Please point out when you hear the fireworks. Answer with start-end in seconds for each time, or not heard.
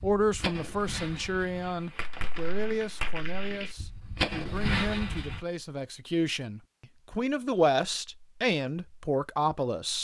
0.0-5.4.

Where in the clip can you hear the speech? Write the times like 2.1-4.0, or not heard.
0.0-9.9.